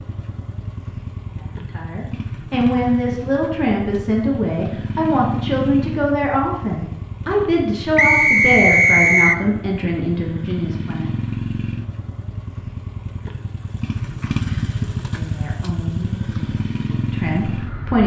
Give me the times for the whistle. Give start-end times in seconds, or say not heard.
8.0-9.4.